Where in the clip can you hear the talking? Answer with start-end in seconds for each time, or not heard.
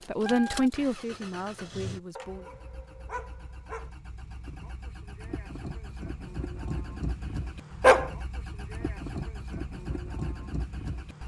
0.1-2.5.